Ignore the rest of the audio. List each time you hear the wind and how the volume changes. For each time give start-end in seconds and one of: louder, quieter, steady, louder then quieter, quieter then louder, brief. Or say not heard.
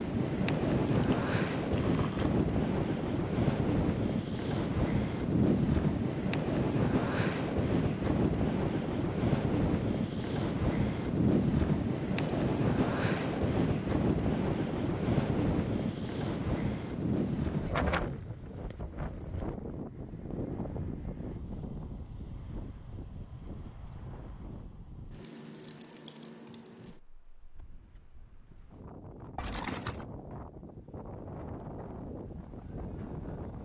0.0-33.5 quieter.